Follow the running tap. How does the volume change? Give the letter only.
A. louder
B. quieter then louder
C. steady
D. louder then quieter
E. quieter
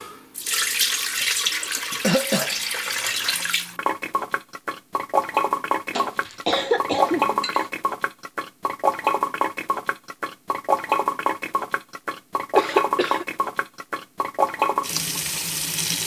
C.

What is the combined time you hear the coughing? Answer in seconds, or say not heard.
4 s.